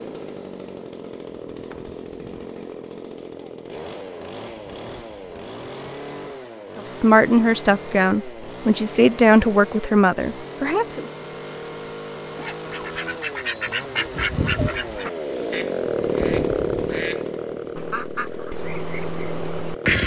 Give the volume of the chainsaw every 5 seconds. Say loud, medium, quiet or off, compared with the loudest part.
medium, medium, medium, loud.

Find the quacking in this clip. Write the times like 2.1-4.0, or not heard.
12.3-20.0.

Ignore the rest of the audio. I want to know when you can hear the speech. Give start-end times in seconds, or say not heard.
6.8-11.1.